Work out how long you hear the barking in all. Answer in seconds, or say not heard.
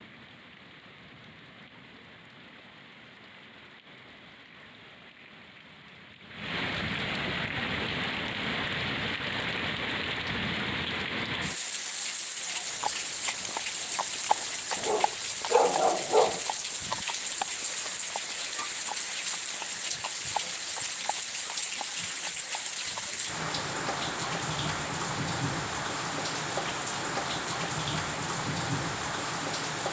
2 s.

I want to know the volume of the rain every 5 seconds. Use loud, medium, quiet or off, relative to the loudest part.
quiet, loud, loud, loud, loud, loud.